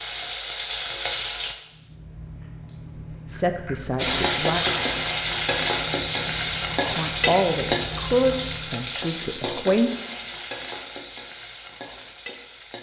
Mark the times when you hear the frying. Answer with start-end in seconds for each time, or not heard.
0.0-1.6, 4.0-12.7.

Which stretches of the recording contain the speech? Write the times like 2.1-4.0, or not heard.
3.3-4.6, 7.0-9.9.